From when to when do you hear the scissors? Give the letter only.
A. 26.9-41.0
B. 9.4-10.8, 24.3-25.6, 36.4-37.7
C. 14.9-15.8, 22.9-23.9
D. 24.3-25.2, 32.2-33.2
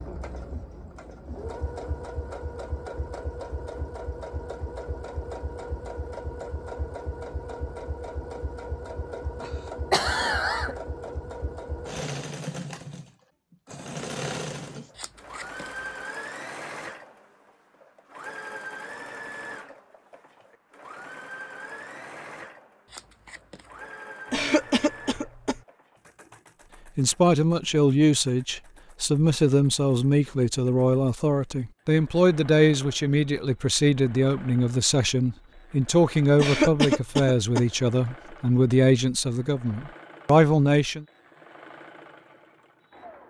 C.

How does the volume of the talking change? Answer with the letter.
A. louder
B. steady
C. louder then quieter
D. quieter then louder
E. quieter
B.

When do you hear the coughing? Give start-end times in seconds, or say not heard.
9.4-10.8, 24.3-25.6, 36.4-37.7.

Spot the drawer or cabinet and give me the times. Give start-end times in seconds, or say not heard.
not heard.